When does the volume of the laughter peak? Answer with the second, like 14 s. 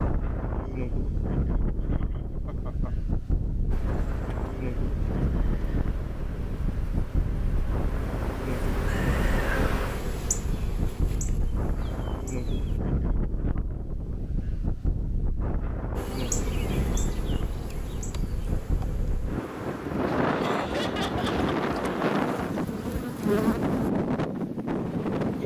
21 s.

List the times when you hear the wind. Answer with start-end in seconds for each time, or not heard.
0.0-25.4.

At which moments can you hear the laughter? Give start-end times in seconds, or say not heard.
1.9-2.9, 20.4-21.5.